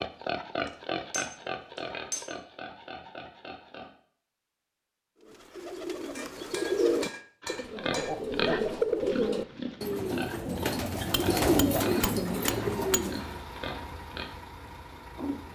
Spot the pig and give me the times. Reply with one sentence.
You can hear the pig from 0.0 to 3.9 s and from 7.4 to 14.3 s.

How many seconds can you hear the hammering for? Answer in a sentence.
You can hear the hammering for 6 seconds altogether.